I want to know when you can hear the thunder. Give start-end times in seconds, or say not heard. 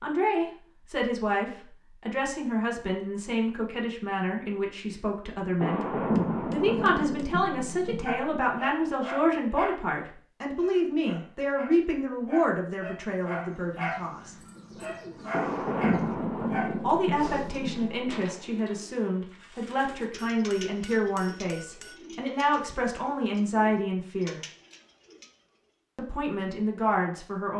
5.6-8.4, 15.3-18.1.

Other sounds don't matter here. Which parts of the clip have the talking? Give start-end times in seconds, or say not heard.
0.0-14.3, 16.8-24.4, 25.9-27.5.